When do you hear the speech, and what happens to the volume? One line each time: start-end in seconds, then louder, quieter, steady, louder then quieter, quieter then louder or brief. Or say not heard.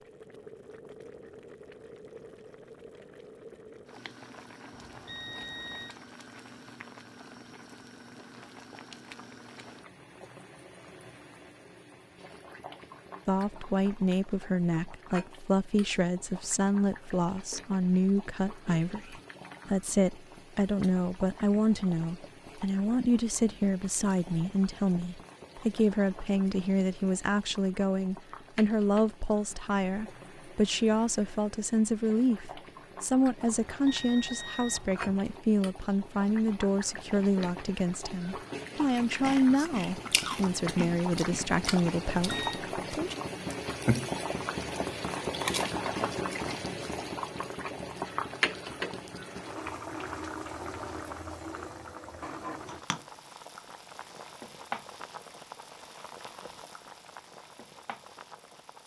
13.2-43.1 steady.